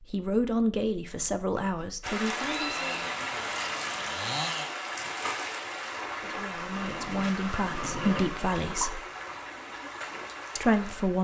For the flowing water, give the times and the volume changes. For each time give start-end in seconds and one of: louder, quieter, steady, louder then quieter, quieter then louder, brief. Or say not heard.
2.0-11.1 quieter.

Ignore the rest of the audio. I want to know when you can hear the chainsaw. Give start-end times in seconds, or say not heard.
2.8-4.7.